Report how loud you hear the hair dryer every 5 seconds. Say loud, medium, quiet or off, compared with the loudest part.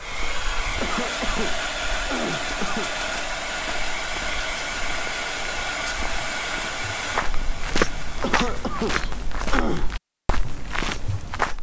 loud, loud, off.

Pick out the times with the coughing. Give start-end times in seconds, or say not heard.
0.8-3.0, 8.2-9.9.